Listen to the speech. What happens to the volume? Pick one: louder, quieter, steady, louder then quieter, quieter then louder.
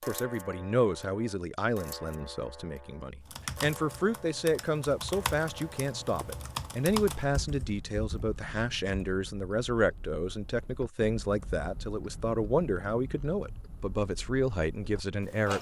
steady.